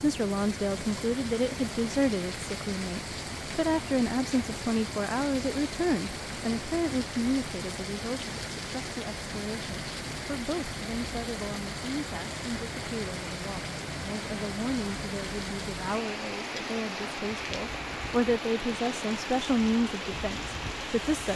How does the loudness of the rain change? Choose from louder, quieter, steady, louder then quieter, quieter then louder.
steady.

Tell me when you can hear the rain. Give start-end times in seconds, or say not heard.
0.0-21.3.